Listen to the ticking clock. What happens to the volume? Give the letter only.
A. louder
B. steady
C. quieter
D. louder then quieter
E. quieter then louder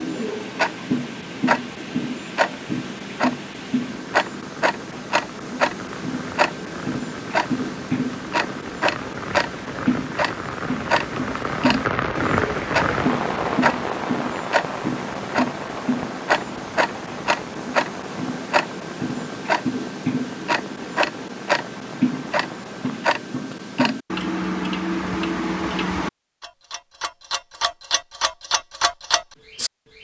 B.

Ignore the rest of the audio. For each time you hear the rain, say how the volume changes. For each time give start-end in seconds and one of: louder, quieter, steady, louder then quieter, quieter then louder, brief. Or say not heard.
0.0-23.1 louder then quieter.